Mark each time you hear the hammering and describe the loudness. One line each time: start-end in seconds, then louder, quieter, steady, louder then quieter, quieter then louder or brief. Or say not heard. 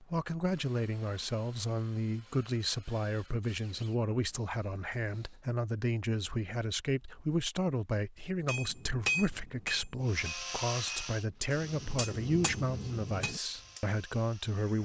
8.4-13.8 quieter then louder.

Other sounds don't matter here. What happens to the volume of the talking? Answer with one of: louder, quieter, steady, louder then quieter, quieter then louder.
steady.